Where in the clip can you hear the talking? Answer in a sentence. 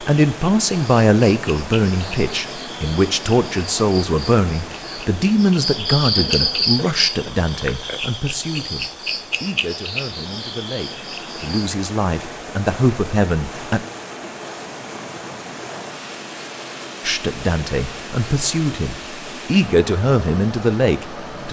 The talking can be heard from 0.0 to 13.8 s and from 17.1 to 21.4 s.